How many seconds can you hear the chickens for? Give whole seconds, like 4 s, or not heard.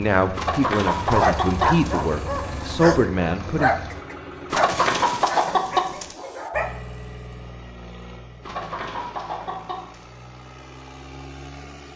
5 s.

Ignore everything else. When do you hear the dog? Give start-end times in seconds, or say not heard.
0.9-6.7.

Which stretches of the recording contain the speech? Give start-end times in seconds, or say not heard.
0.0-3.7.